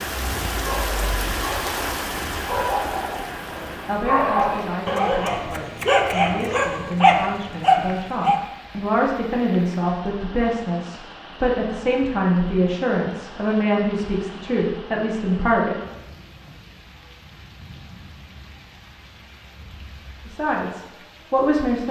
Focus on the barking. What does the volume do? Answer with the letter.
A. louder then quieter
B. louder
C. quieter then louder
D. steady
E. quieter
B.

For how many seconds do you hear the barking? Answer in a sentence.
You can hear the barking for 8 seconds altogether.